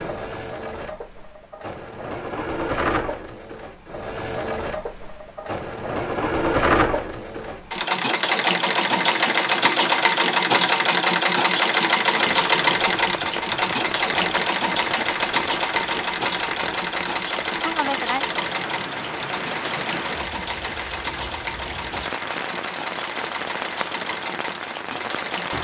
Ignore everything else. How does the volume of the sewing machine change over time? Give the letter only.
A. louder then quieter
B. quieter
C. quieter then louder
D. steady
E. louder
A.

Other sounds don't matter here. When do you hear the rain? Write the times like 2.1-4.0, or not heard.
12.2-25.5.